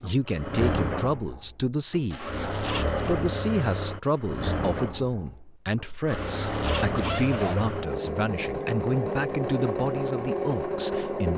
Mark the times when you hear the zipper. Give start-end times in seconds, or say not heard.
2.1-3.1, 6.1-7.7.